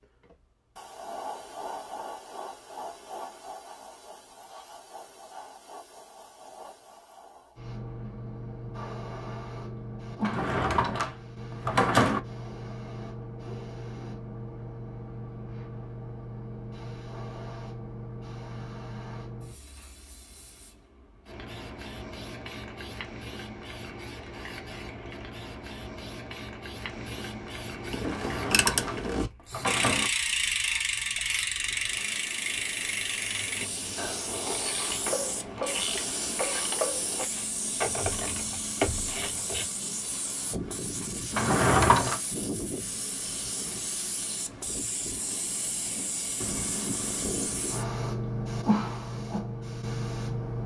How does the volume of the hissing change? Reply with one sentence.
The volume of the hissing goes up.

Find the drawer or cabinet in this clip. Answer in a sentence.
The drawer or cabinet can be heard from 10.2 to 12.2 s, from 28.1 to 30.1 s and from 41.3 to 42.2 s.